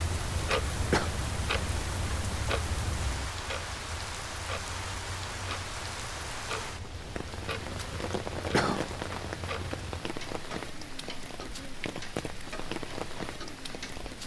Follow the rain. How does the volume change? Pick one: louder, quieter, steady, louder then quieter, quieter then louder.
steady.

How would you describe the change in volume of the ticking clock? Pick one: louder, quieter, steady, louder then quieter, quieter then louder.
quieter.